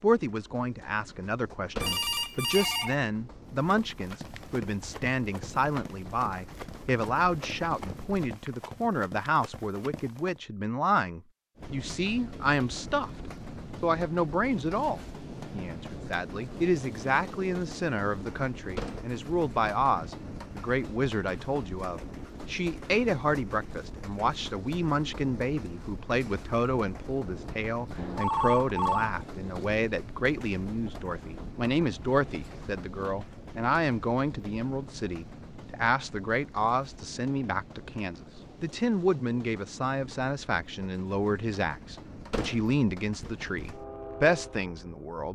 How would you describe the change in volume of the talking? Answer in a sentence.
The volume of the talking stays about the same.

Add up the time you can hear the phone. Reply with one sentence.
You can hear the phone for 2 seconds altogether.